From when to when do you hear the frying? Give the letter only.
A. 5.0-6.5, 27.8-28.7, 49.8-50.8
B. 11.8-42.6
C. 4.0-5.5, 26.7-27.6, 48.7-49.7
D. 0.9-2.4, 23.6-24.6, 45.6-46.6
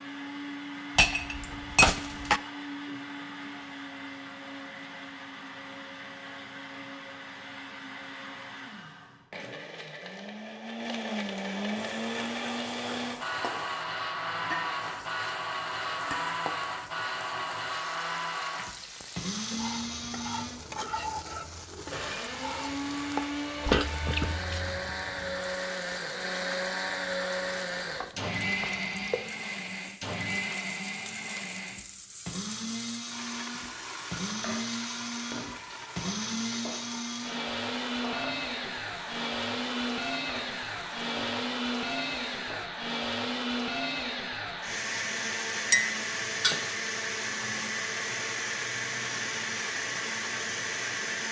B.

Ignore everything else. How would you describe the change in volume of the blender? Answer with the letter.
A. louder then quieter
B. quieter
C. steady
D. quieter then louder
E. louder
E.